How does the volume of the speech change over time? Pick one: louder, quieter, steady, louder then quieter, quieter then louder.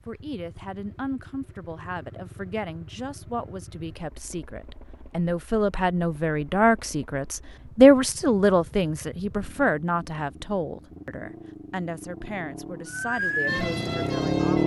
louder then quieter.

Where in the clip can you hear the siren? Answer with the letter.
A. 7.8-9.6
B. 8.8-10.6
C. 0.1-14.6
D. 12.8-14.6
D.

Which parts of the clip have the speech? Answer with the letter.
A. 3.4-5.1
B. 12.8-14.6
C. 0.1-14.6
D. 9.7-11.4
C.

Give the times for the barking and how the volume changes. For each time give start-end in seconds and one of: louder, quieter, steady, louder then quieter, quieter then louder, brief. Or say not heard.
not heard.